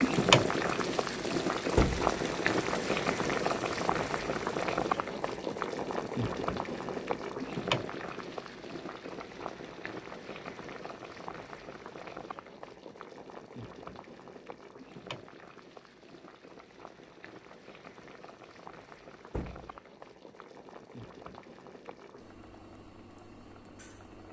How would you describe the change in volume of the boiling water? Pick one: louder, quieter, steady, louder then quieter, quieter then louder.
quieter.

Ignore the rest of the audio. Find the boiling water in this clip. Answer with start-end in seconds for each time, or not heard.
0.0-24.2.